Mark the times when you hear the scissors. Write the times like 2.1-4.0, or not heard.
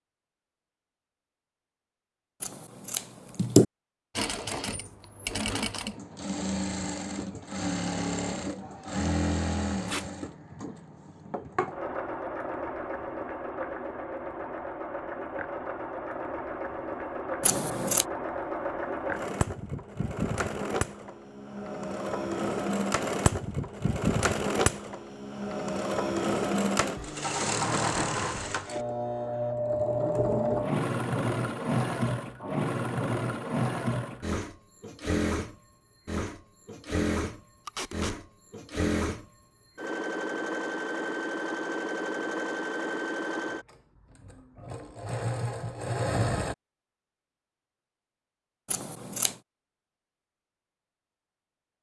2.4-3.6, 17.4-18.1, 48.6-49.4.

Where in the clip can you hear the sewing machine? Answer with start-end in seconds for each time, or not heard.
4.2-46.5.